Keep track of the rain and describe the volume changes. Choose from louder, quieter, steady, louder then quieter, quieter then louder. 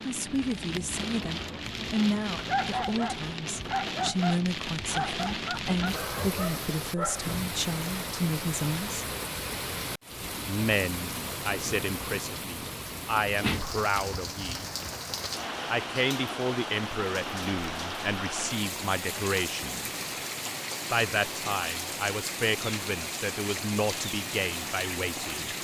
steady.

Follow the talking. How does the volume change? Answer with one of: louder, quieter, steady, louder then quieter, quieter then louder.
steady.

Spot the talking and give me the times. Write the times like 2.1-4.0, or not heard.
0.1-9.1, 10.4-14.7, 15.7-19.9, 20.9-25.5.